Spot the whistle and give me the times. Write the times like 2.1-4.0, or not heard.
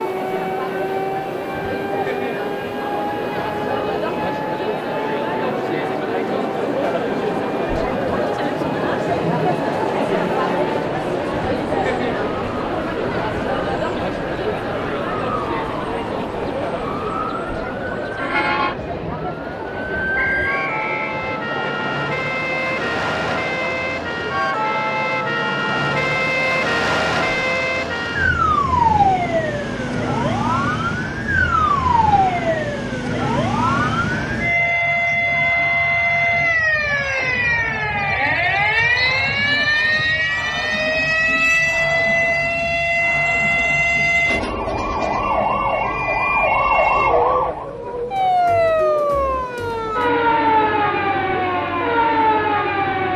20.1-21.1, 39.0-40.2.